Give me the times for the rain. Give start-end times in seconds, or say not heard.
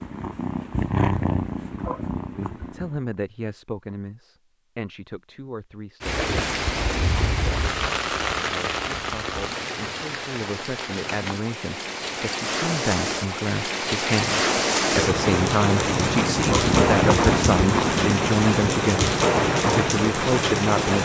6.0-21.0.